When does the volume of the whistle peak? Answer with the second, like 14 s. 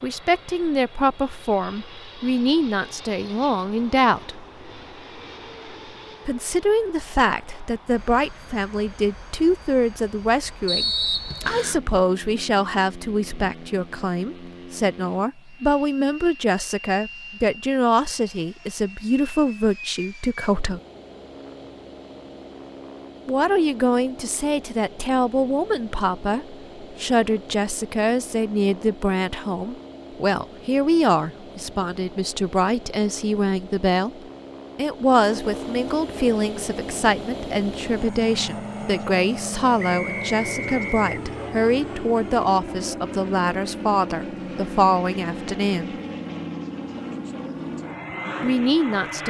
11 s.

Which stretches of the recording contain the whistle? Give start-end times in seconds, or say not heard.
10.7-11.8, 39.8-41.0.